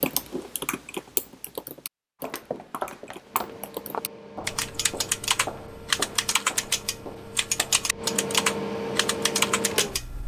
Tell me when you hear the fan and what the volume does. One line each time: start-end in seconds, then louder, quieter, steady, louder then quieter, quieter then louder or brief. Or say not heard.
3.2-10.2 louder.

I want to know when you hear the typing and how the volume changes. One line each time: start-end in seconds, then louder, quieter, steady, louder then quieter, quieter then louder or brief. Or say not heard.
0.0-10.1 quieter then louder.